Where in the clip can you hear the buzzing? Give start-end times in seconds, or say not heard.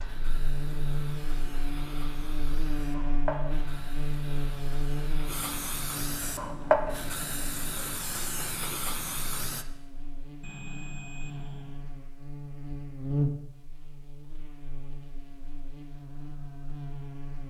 0.0-17.4.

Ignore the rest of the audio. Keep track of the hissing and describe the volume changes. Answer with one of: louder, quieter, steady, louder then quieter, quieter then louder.
louder then quieter.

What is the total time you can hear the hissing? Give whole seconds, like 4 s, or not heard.
10 s.